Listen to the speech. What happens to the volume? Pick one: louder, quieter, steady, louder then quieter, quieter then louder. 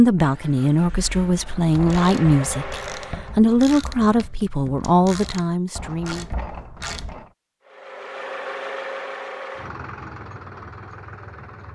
steady.